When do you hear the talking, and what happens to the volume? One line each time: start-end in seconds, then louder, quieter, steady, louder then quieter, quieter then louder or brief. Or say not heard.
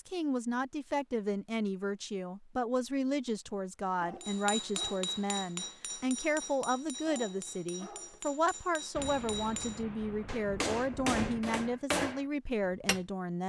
0.0-13.4 steady.